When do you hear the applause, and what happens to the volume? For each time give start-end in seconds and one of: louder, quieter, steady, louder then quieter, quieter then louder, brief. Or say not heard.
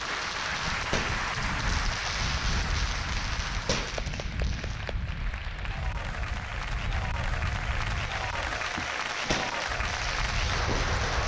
0.0-11.2 quieter then louder.